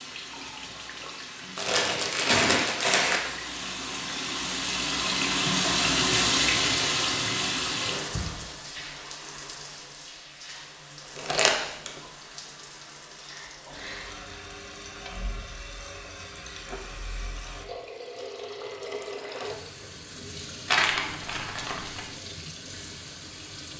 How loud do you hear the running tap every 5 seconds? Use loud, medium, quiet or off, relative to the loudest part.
medium, loud, quiet, quiet, quiet.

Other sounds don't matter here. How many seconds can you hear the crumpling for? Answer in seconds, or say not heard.
4 s.